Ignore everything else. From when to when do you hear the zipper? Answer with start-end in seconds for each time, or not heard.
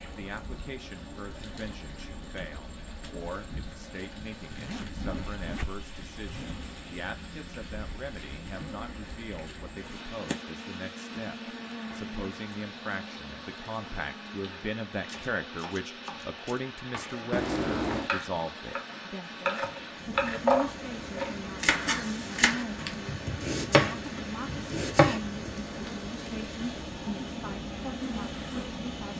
4.5-6.5, 17.3-18.1.